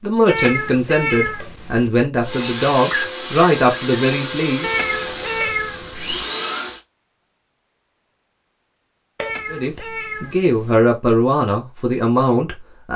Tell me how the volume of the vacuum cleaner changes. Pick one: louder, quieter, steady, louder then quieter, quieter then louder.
steady.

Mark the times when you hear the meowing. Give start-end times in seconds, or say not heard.
0.2-1.9, 4.6-6.2, 9.2-10.8.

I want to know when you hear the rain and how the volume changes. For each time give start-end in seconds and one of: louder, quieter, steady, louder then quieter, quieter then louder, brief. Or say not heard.
not heard.